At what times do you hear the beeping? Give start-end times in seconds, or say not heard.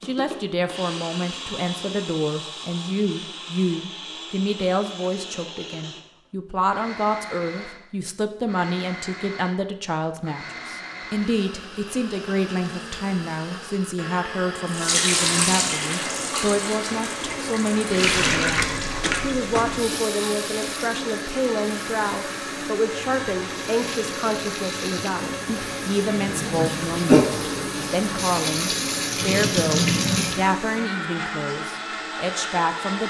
19.0-19.9.